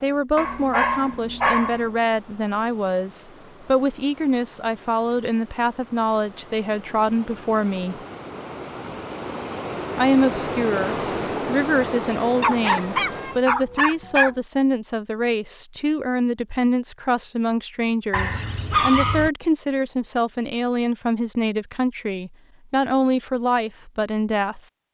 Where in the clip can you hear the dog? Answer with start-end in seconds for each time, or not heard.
0.3-1.9, 12.4-14.3, 18.1-19.3.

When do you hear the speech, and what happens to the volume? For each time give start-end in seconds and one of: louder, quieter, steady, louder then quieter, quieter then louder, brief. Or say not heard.
0.0-8.0 steady
9.9-24.6 steady.